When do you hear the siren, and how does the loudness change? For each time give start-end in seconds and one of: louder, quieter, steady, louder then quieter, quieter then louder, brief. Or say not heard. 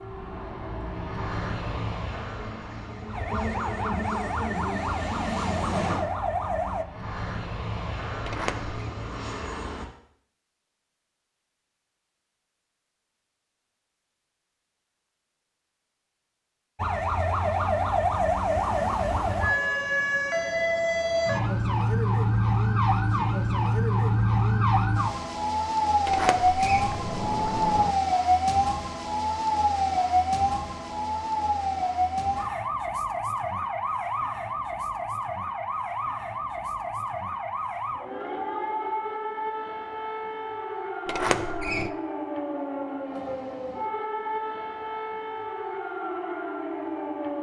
0.0-6.8 louder
16.8-47.3 quieter.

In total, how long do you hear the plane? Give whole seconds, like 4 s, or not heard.
10 s.